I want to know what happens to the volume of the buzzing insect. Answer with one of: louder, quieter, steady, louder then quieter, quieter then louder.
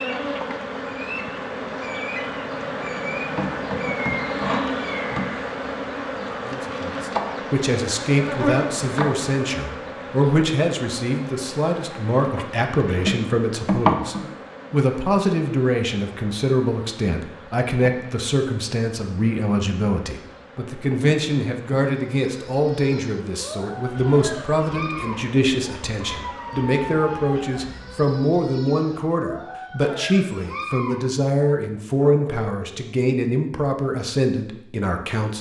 quieter.